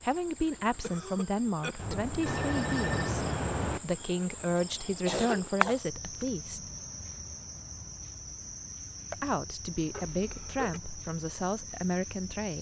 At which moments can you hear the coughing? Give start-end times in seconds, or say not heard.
0.6-2.0, 4.5-6.3, 9.9-10.8.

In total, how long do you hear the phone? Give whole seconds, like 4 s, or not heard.
2 s.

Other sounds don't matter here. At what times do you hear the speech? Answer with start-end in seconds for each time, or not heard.
0.0-6.6, 9.1-12.5.